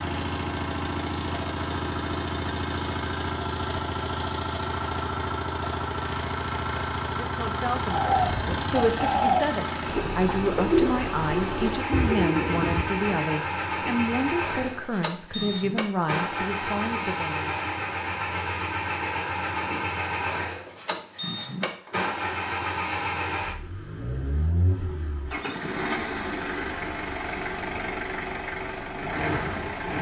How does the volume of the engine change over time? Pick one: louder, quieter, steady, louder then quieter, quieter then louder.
steady.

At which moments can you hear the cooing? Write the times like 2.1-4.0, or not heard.
7.8-13.2.